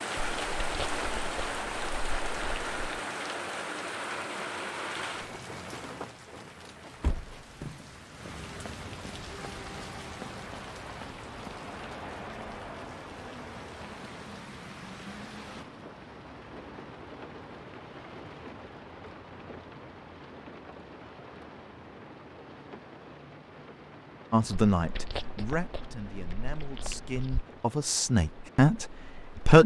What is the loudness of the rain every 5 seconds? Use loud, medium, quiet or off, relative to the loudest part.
loud, medium, medium, medium, quiet, quiet.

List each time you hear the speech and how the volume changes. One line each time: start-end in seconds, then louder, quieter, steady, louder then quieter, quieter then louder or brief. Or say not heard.
24.3-29.6 quieter then louder.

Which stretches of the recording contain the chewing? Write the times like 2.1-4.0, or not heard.
0.1-3.0, 24.8-27.4.